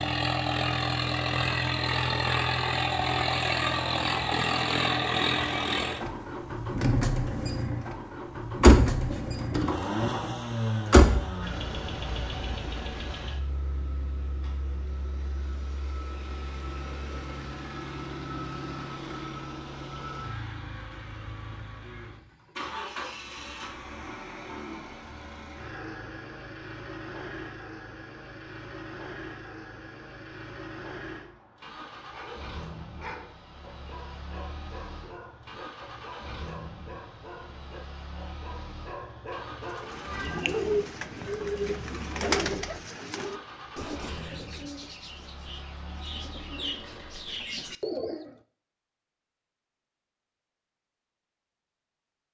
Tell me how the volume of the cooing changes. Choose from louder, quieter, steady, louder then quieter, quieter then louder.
quieter then louder.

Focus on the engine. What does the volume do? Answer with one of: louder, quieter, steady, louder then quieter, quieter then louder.
quieter.